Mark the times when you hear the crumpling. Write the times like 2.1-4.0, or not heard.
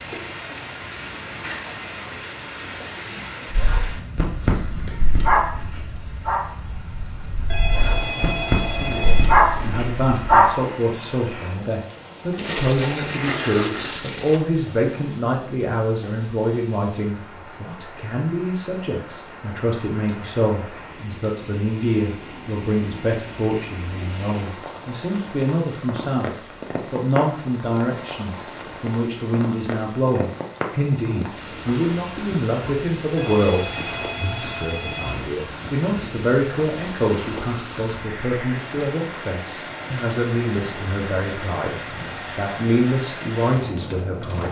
12.3-14.4, 33.3-34.0.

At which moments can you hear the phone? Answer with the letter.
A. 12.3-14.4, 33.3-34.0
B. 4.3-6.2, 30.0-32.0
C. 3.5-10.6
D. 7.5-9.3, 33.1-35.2
D.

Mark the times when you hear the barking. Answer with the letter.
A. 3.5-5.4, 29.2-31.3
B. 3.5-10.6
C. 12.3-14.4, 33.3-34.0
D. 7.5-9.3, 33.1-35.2
B.